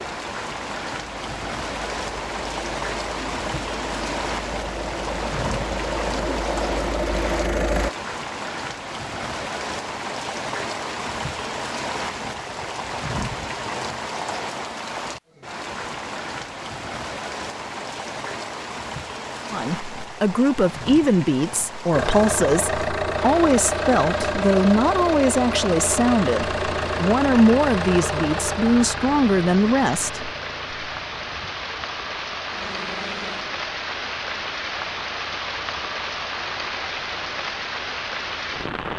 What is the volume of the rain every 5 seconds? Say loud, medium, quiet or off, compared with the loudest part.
loud, loud, loud, loud, medium, medium, loud, loud.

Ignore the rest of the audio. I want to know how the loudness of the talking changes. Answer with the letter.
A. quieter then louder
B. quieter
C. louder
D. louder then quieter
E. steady
E.